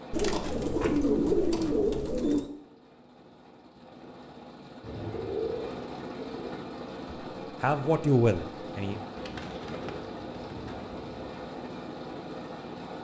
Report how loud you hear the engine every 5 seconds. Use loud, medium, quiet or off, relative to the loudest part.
medium, loud, loud.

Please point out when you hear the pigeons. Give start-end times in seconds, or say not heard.
0.1-2.5, 4.8-6.5, 9.2-11.4.